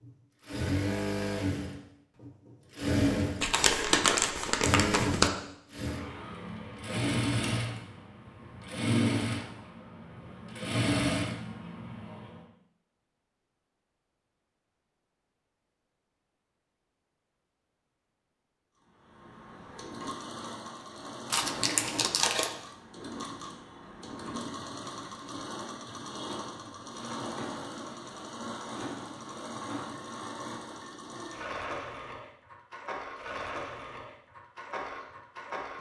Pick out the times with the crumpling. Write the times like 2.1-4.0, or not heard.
3.4-5.3, 21.3-22.6.